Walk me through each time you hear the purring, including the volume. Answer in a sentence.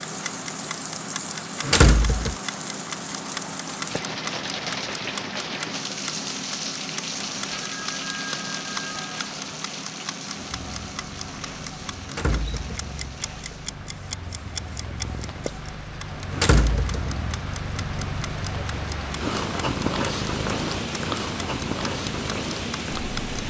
The purring can be heard from 10.5 to 23.2 s, getting louder.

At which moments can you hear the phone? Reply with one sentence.
The phone can be heard from 7.5 to 9.3 s.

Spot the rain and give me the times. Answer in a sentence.
You can hear the rain from 0.0 to 23.4 s.